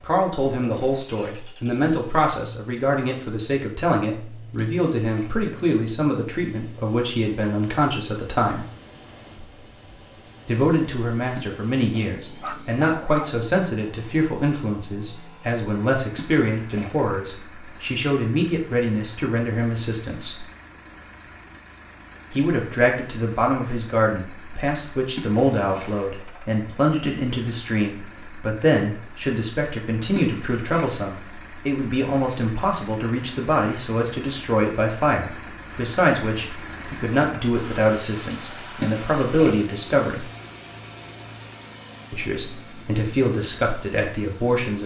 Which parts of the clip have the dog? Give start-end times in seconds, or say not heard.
12.4-13.3.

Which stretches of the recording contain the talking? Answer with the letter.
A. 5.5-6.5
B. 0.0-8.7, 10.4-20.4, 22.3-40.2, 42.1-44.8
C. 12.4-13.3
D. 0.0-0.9
B.